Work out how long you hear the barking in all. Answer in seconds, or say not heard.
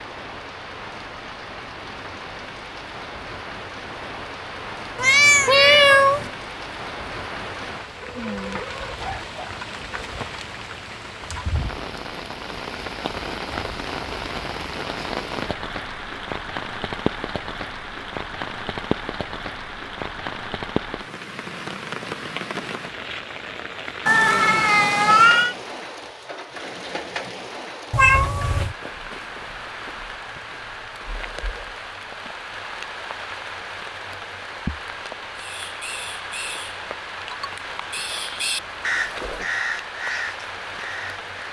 2 s.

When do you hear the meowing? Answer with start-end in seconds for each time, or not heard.
5.0-6.3, 24.1-25.6, 27.9-28.8.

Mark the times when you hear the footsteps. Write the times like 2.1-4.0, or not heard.
not heard.